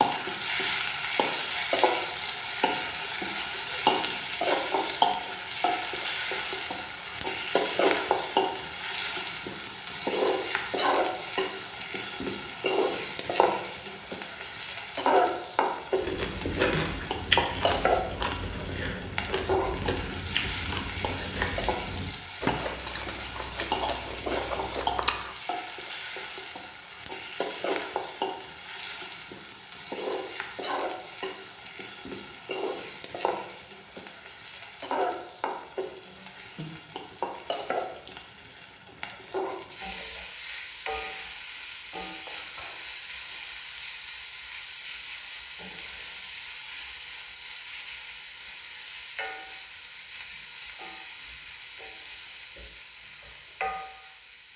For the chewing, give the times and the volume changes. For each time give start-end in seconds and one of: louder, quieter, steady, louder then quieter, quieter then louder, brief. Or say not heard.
15.9-25.4 quieter.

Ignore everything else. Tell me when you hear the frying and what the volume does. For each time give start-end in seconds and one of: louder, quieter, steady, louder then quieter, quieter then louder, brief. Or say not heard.
0.0-54.5 quieter.